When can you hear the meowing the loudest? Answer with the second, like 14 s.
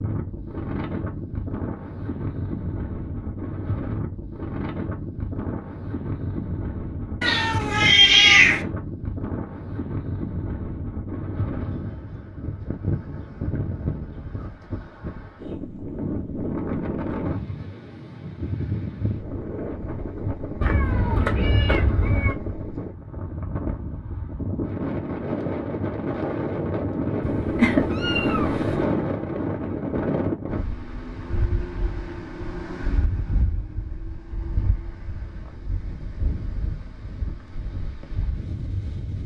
8 s.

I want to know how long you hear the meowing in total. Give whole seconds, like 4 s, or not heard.
5 s.